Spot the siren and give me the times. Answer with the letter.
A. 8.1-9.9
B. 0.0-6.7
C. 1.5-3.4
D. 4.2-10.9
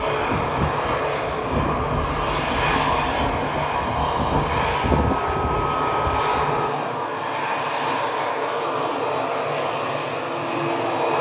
B.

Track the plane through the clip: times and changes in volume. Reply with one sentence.
You can hear the plane from 0.0 to 11.1 s, at a steady volume.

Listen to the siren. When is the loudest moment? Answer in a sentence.
The loudest moment of the siren is at 5 seconds.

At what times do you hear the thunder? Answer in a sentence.
You can hear the thunder from 1.5 to 3.4 s.